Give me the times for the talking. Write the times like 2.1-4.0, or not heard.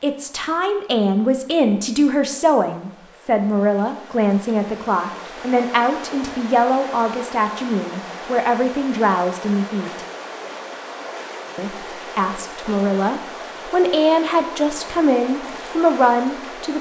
0.0-10.0, 11.6-16.7.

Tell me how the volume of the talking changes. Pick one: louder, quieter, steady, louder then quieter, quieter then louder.
steady.